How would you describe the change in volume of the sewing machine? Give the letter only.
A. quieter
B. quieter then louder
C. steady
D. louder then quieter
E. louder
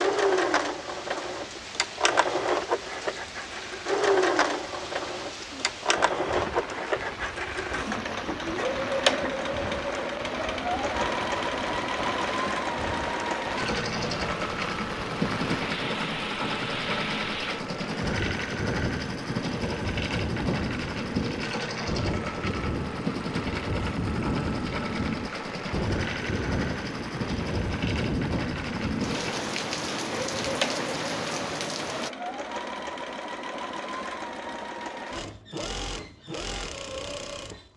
A.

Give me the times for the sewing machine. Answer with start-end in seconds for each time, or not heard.
0.0-37.7.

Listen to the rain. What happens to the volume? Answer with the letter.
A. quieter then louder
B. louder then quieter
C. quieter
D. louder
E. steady
D.